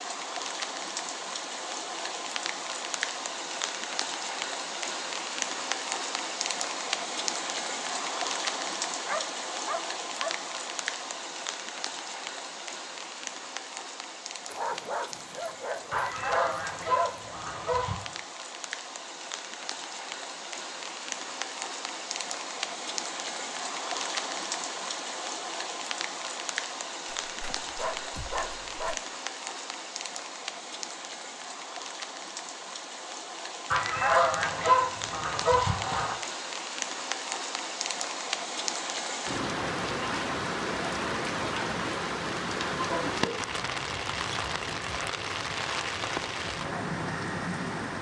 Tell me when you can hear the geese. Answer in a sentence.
You can hear the geese from 15.9 to 18.1 s and from 33.7 to 36.1 s.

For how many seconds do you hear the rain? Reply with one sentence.
The rain can be heard for 48 seconds in total.